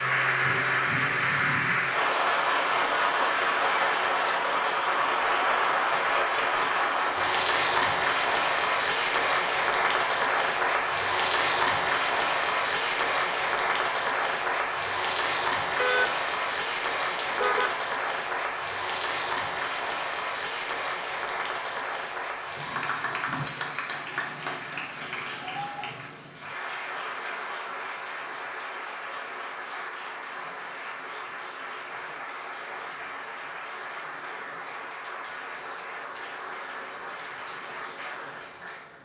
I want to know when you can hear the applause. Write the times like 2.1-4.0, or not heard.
0.0-39.0.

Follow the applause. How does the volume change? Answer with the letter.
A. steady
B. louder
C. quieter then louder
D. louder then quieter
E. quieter
E.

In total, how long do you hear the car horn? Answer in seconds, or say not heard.
2 s.